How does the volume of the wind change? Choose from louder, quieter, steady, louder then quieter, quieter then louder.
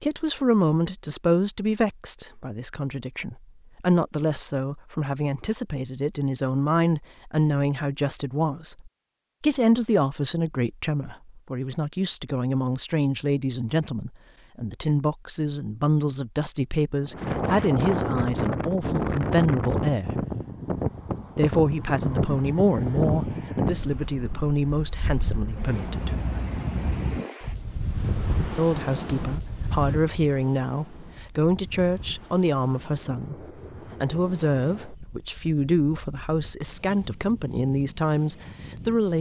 quieter.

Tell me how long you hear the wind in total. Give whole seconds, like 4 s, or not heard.
22 s.